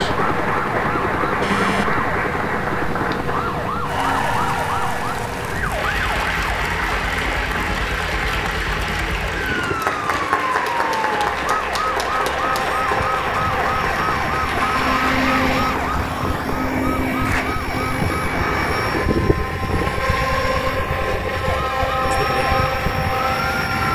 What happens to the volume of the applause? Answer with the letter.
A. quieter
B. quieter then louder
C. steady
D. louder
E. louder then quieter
C.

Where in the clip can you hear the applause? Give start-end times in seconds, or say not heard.
0.0-17.4.